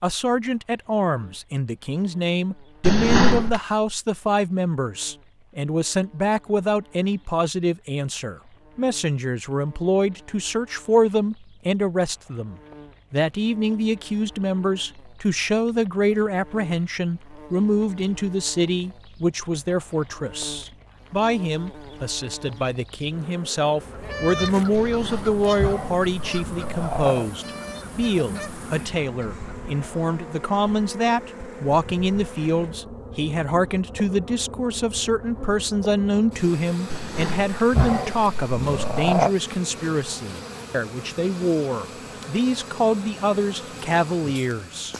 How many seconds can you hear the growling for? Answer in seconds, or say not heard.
6 s.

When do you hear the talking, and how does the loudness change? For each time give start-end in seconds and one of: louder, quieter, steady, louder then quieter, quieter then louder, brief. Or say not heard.
0.0-44.9 steady.